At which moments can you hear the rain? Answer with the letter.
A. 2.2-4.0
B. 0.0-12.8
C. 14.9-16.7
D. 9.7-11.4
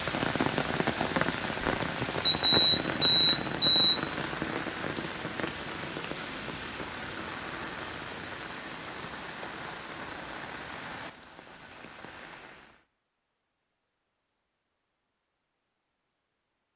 B.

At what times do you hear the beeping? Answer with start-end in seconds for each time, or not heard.
2.2-4.0.